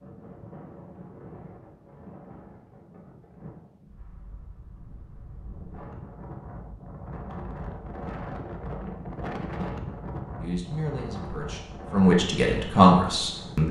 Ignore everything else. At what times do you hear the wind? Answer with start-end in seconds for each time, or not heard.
0.0-13.6.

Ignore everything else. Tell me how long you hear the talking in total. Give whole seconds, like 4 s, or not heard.
3 s.